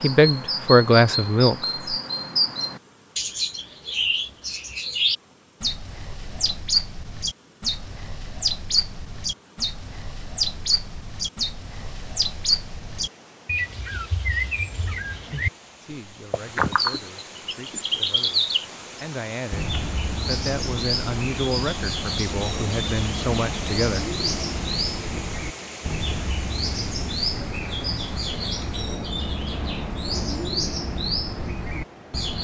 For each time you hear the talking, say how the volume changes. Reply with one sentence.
You can hear the talking briefly from 0.0 to 1.9 s; and from 15.8 to 24.0 s, getting louder.